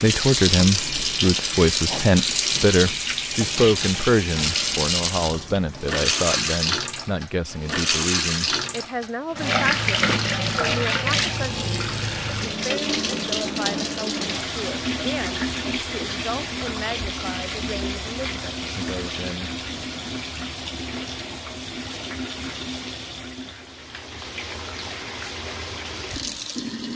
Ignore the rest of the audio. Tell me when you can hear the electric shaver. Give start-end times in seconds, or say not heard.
not heard.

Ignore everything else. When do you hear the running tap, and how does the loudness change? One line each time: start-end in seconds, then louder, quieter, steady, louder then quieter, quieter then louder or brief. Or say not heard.
0.0-26.9 quieter.